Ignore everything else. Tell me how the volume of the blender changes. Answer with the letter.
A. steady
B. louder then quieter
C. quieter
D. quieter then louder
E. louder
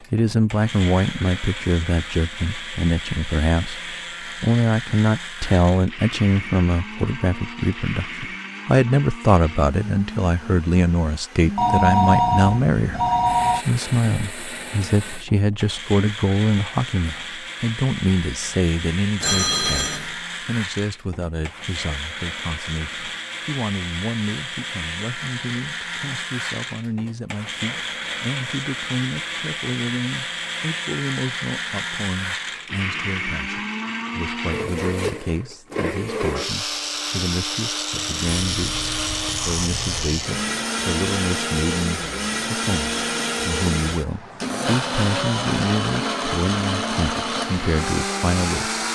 E.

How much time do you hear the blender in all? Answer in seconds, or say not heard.
49 s.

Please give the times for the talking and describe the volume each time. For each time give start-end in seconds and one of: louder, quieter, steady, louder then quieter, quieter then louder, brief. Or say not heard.
0.0-38.9 quieter
39.5-48.8 steady.